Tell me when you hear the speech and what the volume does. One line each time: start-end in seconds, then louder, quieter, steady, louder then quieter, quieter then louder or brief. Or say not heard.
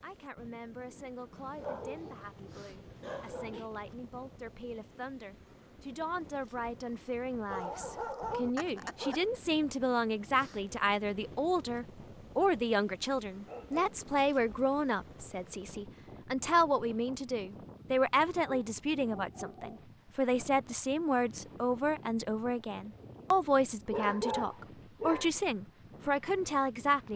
0.0-27.1 louder.